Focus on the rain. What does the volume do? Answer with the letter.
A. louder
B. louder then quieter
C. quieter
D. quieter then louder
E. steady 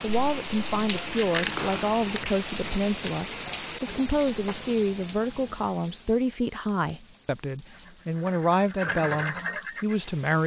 C.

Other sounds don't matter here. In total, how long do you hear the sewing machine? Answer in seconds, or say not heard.
3 s.